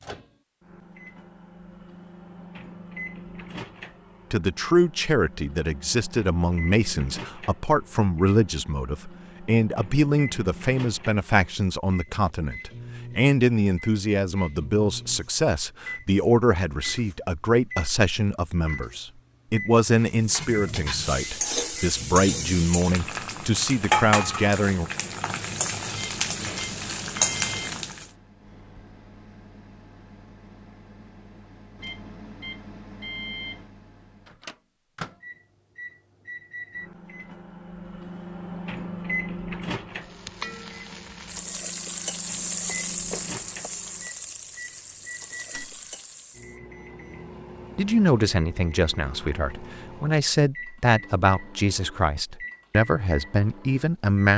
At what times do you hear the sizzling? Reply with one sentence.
The sizzling can be heard from 20.0 to 28.1 s and from 40.0 to 46.5 s.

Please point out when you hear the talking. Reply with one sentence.
The talking can be heard from 4.3 to 24.9 s and from 47.8 to 54.3 s.